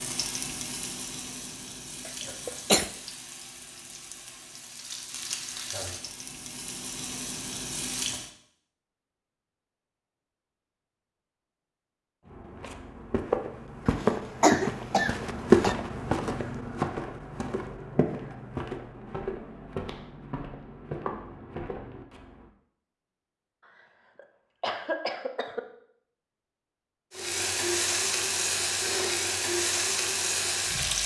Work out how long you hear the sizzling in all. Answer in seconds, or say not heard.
12 s.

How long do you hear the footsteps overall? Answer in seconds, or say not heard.
10 s.